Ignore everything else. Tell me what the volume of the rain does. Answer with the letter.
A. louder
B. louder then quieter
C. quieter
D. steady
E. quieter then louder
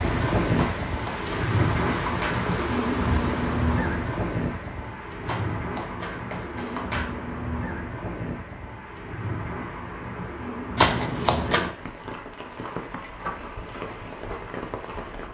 C.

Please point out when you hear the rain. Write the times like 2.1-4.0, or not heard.
0.0-15.2.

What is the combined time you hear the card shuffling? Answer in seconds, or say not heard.
5 s.